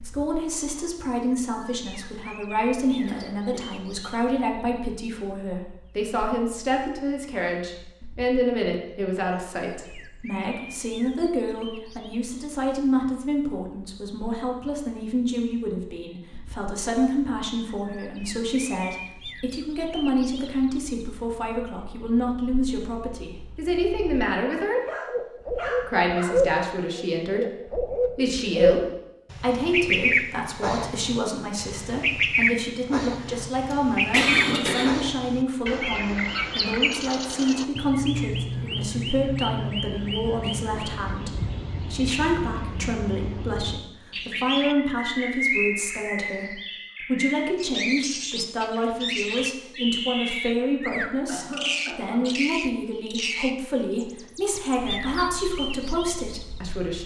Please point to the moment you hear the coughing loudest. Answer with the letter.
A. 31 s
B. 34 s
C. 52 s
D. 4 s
B.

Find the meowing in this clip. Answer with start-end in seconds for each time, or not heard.
not heard.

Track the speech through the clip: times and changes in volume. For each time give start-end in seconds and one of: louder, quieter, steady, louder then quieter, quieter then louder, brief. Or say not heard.
0.0-24.8 steady
25.7-57.0 steady.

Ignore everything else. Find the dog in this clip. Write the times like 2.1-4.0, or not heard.
24.6-26.4.